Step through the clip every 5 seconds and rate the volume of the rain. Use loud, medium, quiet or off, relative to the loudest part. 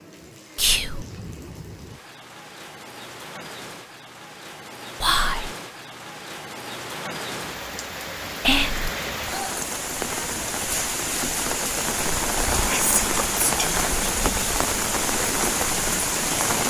quiet, medium, loud, loud.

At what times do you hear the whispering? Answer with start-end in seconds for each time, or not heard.
0.6-1.1, 5.0-5.5, 8.4-8.9, 12.7-14.6.